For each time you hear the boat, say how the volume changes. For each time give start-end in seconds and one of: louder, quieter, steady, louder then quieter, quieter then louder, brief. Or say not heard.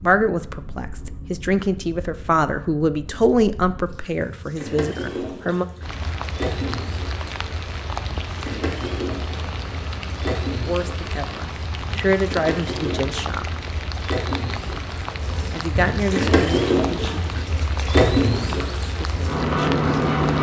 0.0-20.3 louder.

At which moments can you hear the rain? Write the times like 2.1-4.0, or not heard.
5.8-20.3.